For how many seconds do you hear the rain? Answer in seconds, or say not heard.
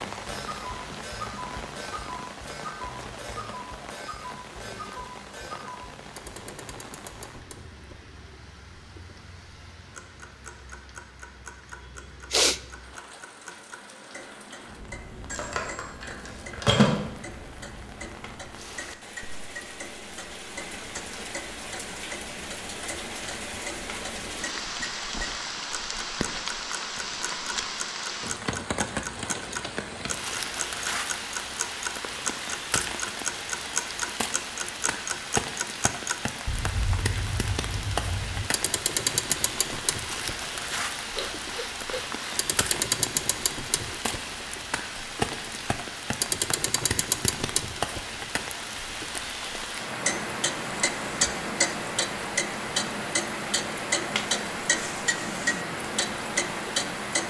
57 s.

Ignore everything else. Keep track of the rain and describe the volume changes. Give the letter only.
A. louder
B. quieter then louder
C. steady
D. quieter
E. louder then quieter
A.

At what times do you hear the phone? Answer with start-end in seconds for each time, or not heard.
15.3-16.9.